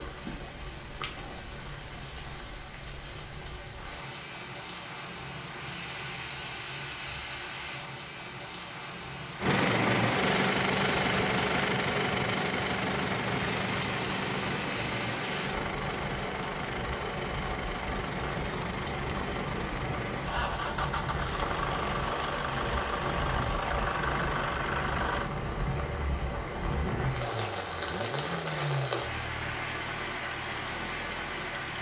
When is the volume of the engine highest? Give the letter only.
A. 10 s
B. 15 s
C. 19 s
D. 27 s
A.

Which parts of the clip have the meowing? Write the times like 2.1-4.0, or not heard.
not heard.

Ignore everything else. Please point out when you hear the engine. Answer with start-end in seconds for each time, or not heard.
9.4-31.7.